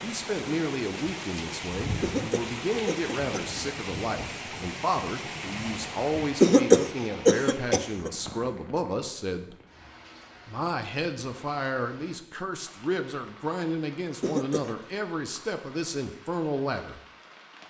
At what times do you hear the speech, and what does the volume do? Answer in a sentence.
You can hear the speech from 0.0 to 9.6 s, at a steady volume; and from 10.4 to 17.0 s, at a steady volume.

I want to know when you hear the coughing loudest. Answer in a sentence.
The volume of the coughing peaks at 7 seconds.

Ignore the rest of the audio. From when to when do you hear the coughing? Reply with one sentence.
The coughing can be heard from 2.0 to 3.7 s, from 6.4 to 8.1 s and from 14.2 to 14.7 s.